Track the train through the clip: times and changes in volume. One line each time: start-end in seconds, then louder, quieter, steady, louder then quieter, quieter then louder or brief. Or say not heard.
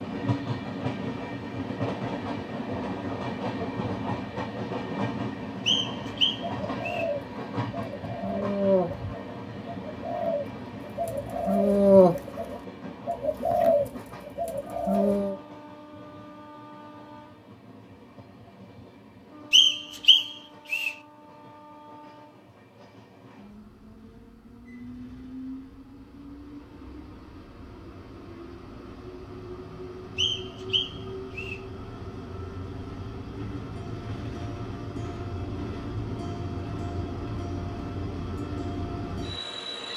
0.0-39.9 quieter then louder.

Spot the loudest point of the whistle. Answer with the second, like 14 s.
20 s.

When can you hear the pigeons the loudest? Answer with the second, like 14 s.
12 s.